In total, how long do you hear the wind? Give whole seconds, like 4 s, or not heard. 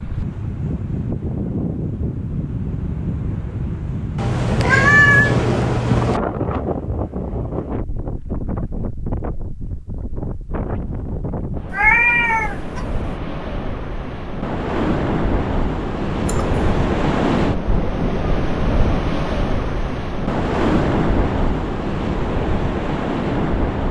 24 s.